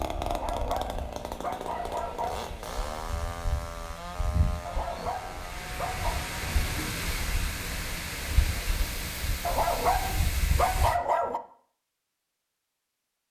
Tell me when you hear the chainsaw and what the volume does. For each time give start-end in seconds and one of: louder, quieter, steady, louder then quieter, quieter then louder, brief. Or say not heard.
0.0-6.8 quieter.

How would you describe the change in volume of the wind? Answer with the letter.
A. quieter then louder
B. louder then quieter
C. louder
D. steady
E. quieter
C.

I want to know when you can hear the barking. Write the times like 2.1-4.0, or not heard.
0.2-2.5, 4.7-6.2, 9.4-11.4.